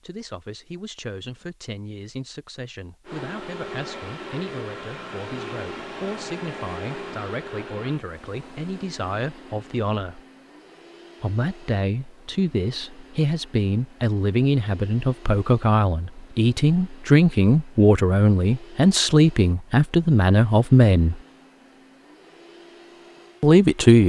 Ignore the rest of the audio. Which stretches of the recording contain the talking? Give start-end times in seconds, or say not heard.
0.0-10.2, 11.2-21.2, 23.4-24.0.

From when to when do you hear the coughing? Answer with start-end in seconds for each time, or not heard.
not heard.